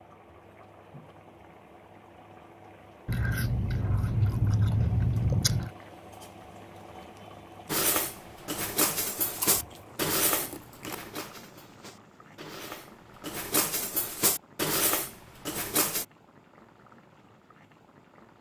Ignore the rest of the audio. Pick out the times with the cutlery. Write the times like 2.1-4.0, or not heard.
7.7-16.1.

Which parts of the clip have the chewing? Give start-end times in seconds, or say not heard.
3.0-5.7, 9.4-10.9.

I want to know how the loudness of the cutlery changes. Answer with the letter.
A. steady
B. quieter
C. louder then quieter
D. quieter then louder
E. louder
D.